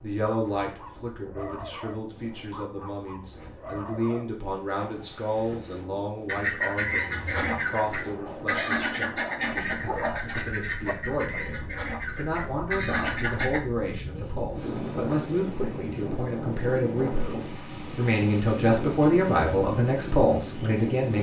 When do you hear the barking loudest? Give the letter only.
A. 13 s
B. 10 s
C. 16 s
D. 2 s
B.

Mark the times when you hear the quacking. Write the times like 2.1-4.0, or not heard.
6.2-13.6.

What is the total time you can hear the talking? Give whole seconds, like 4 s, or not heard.
21 s.